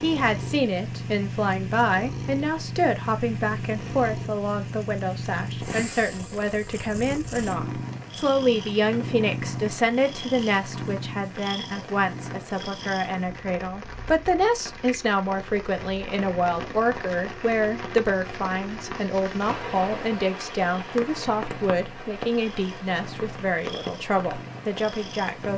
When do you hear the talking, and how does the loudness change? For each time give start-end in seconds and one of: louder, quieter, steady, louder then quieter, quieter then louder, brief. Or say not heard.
0.0-25.5 steady.